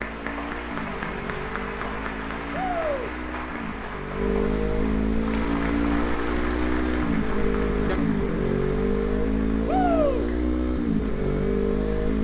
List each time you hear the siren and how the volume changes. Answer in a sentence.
The siren can't be heard in this clip.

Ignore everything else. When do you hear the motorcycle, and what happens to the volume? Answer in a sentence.
You can hear the motorcycle from 0.0 to 12.2 s, getting louder.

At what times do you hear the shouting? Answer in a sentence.
You can hear the shouting from 2.5 to 3.1 s and from 9.7 to 10.2 s.